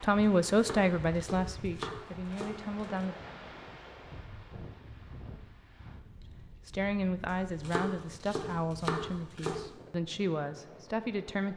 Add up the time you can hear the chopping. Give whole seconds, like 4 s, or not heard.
5 s.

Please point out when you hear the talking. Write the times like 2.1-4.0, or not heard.
0.0-3.1, 6.7-11.5.